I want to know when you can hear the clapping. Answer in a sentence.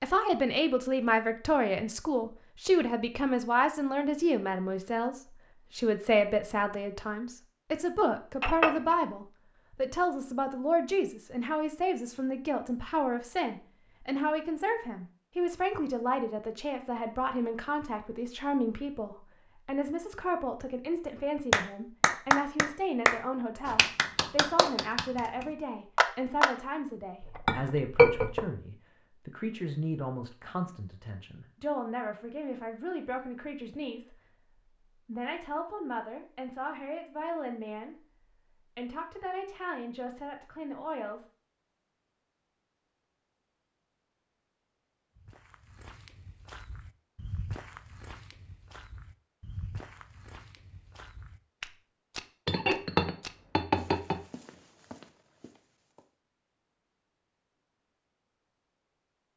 The clapping can be heard from 21.5 to 26.5 s.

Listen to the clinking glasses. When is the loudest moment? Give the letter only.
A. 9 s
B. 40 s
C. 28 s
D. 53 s
C.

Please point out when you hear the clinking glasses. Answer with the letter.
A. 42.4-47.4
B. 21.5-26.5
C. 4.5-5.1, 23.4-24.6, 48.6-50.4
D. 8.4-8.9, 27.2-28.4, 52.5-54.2
D.